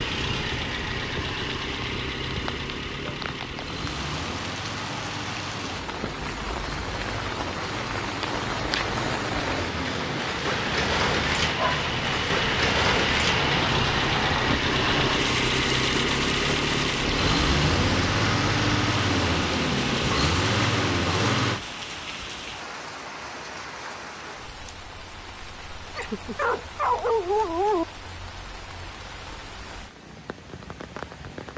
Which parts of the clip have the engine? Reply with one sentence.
The engine can be heard from 0.0 to 21.6 s.